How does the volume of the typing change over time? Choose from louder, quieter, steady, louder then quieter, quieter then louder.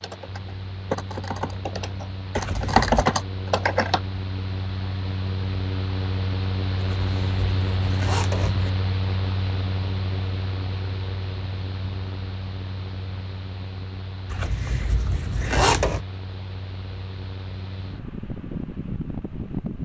quieter then louder.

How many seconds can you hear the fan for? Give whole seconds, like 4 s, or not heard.
20 s.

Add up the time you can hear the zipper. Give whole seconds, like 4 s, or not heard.
4 s.